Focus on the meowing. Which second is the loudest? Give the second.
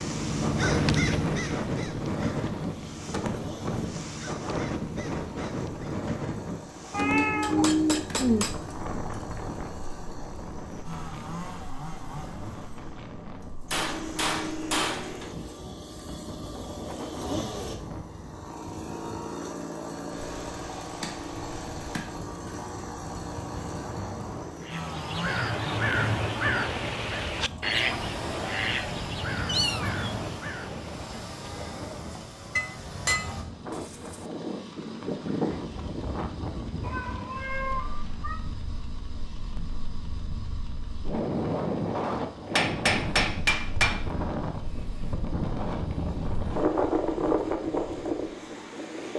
8 s.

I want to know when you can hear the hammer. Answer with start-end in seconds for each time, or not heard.
7.4-8.6, 13.7-15.3, 32.5-34.2, 42.5-44.0.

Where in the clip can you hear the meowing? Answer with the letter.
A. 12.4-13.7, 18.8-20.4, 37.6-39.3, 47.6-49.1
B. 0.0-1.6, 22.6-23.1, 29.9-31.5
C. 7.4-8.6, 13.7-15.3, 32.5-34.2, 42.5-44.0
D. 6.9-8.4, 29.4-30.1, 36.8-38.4
D.